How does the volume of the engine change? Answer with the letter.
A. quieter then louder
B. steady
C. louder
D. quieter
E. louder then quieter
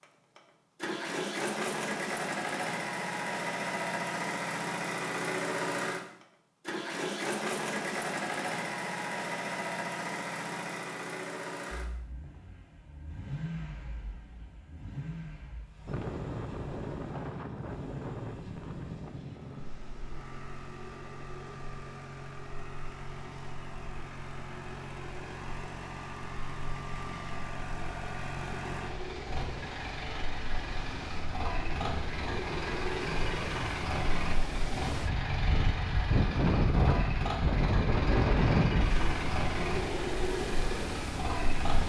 A.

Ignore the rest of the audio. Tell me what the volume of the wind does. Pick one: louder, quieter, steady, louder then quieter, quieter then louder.
quieter then louder.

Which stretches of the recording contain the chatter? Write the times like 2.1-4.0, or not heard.
not heard.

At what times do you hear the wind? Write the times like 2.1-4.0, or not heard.
15.8-41.8.